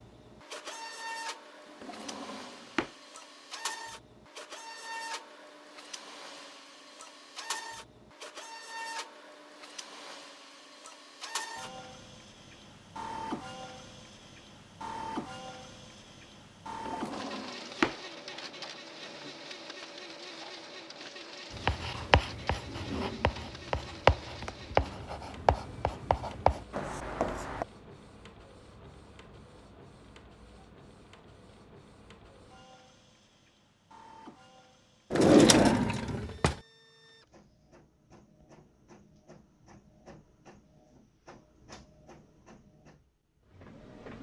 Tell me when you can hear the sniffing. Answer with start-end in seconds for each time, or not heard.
not heard.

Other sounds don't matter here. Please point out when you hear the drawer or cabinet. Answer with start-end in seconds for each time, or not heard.
1.8-2.9, 16.9-17.9, 35.1-36.5.